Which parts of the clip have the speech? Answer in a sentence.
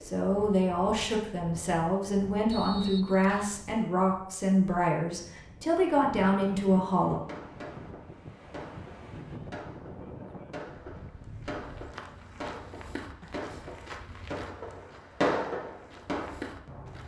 You can hear the speech from 0.0 to 7.2 s.